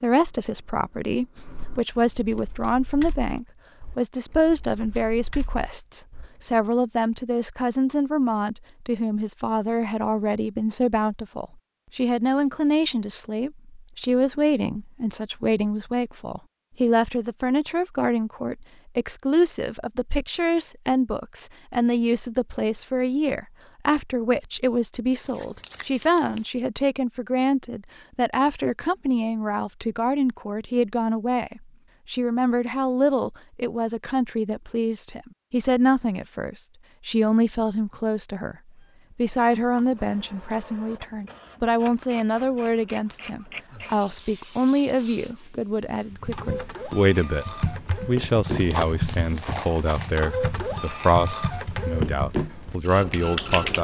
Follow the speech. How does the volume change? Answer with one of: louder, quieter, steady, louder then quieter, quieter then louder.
steady.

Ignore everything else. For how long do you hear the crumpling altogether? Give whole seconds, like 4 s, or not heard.
2 s.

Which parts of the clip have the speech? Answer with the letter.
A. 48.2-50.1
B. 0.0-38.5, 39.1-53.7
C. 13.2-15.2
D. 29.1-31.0
B.